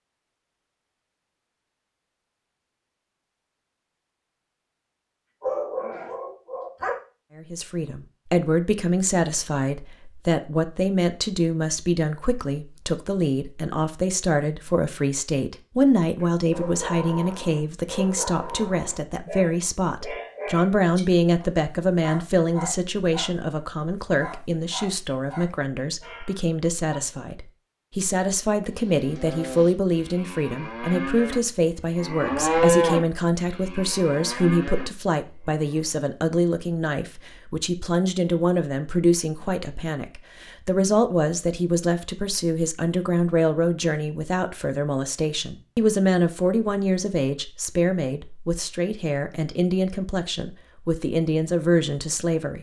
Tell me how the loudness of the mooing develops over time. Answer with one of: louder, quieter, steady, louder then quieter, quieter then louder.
louder then quieter.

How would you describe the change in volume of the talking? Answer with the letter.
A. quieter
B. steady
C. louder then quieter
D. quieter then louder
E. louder
B.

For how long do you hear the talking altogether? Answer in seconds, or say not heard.
45 s.